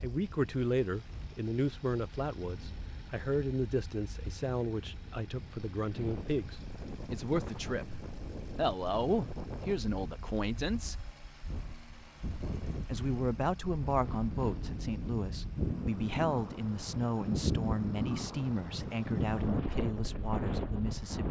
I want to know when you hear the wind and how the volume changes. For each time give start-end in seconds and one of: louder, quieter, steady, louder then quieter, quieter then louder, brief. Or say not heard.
0.0-21.2 louder.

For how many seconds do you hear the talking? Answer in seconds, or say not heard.
19 s.